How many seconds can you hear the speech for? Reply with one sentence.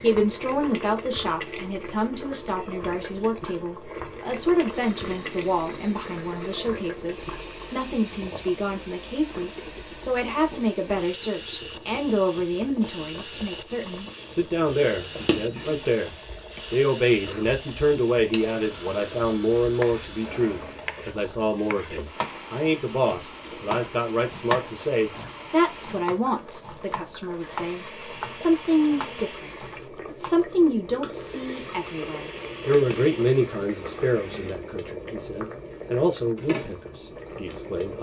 You can hear the speech for 38 seconds altogether.